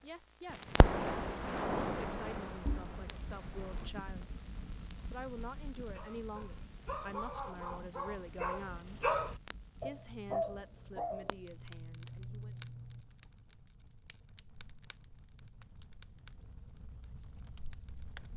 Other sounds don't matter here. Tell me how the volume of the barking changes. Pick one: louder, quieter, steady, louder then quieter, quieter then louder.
louder then quieter.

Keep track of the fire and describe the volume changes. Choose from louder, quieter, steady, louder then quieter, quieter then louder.
quieter.